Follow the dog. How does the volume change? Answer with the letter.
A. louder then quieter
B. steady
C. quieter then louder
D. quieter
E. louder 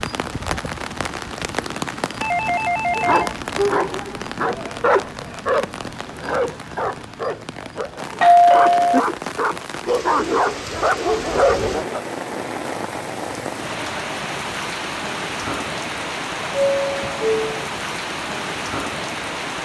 C.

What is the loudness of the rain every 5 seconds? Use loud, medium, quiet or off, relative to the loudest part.
loud, medium, loud, loud.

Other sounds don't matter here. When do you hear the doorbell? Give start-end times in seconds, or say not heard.
2.2-3.3, 8.2-9.0, 16.5-17.4.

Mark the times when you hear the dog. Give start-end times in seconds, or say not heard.
2.9-12.0.